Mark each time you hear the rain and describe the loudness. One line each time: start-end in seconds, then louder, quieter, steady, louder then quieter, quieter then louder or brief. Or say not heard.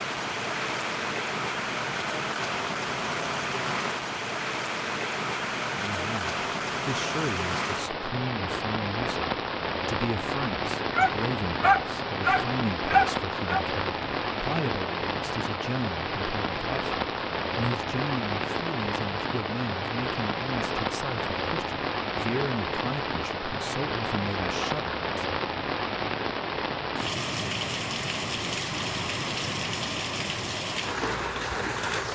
0.0-32.1 steady.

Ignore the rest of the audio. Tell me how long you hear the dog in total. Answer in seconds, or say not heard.
3 s.